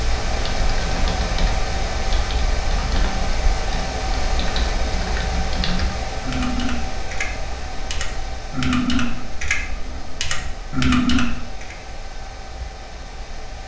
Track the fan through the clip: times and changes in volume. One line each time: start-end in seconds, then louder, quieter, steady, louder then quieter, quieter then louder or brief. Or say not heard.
0.0-13.6 quieter.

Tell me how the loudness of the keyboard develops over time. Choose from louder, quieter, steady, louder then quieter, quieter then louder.
louder.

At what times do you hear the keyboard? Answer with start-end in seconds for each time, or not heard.
0.3-11.8.